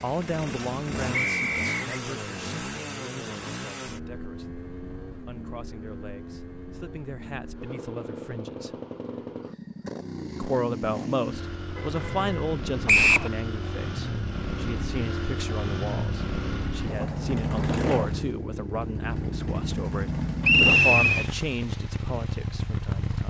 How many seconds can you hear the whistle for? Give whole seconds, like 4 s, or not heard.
2 s.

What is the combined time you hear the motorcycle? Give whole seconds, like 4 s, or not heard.
23 s.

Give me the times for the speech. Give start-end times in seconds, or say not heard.
0.0-8.8, 10.3-23.2.